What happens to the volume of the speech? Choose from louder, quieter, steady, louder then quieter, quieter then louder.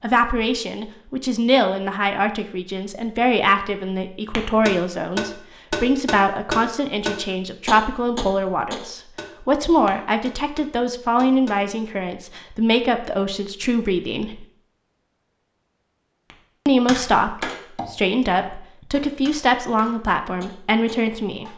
steady.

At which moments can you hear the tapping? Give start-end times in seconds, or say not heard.
4.3-11.6, 16.3-21.5.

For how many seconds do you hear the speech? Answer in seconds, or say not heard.
19 s.